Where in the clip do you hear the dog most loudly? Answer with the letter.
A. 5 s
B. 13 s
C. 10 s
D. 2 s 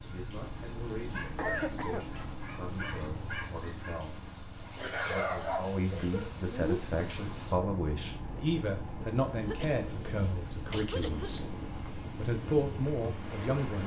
A.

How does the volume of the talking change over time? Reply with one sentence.
The loudness of the talking goes up.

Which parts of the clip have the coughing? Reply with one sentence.
You can hear the coughing from 1.4 to 2.1 s, from 4.8 to 6.8 s and from 9.4 to 11.4 s.